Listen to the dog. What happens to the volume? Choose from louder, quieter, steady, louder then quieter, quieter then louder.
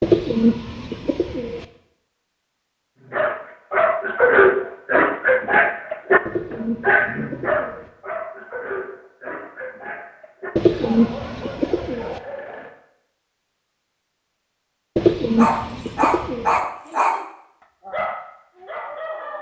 quieter then louder.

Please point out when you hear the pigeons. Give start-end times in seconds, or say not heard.
0.0-1.6, 6.2-7.9, 10.6-12.2, 14.9-16.6.